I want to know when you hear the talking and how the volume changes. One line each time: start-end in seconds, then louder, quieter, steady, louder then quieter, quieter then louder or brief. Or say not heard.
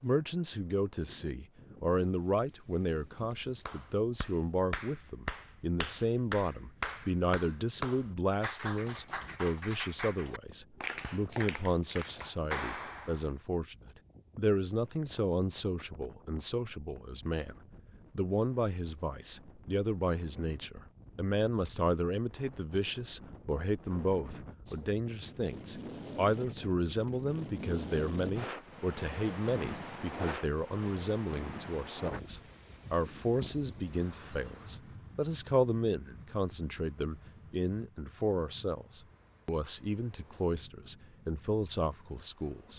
0.0-42.7 steady.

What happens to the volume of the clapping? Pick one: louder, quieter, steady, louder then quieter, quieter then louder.
steady.